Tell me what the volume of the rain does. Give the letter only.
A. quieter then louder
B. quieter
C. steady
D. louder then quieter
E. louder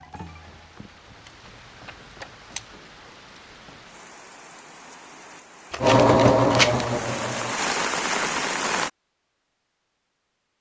E.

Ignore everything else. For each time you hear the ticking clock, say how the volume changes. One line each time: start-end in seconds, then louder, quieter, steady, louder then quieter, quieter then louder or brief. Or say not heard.
not heard.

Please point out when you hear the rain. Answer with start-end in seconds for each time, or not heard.
0.0-8.9.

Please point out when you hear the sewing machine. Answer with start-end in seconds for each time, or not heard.
5.8-7.5.